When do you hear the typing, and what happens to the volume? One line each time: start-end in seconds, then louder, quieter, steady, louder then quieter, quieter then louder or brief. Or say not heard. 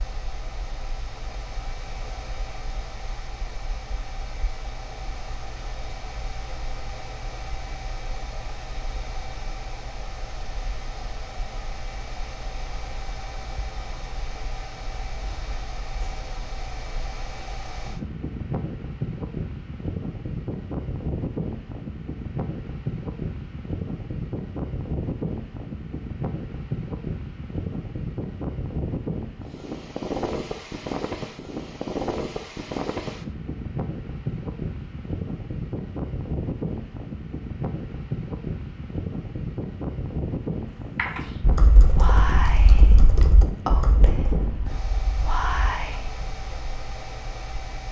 41.0-46.5 quieter.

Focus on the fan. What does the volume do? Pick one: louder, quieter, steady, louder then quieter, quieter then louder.
louder.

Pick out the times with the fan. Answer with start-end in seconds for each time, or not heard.
0.0-47.8.